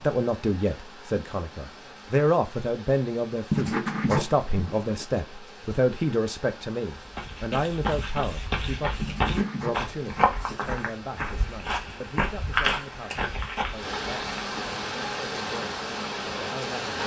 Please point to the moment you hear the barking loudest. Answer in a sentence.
The loudest moment of the barking is at 4 seconds.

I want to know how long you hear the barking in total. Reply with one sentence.
You can hear the barking for 3 seconds altogether.